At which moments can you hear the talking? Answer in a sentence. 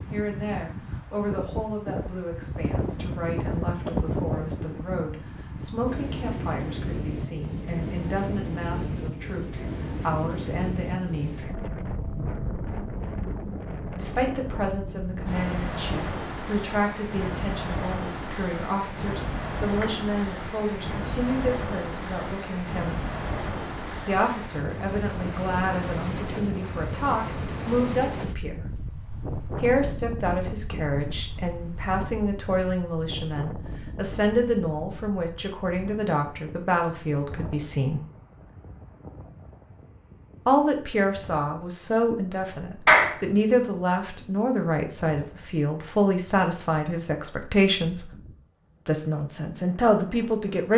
You can hear the talking from 0.1 to 11.5 s, from 13.9 to 23.0 s, from 24.1 to 28.6 s, from 29.6 to 38.0 s, from 40.5 to 48.1 s and from 48.9 to 50.7 s.